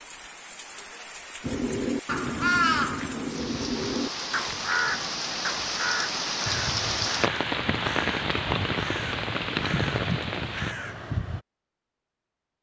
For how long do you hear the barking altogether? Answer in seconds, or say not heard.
not heard.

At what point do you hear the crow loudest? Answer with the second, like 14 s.
3 s.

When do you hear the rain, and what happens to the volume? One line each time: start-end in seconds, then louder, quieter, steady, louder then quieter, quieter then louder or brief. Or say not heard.
0.0-10.8 louder.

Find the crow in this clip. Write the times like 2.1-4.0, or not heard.
1.4-11.4.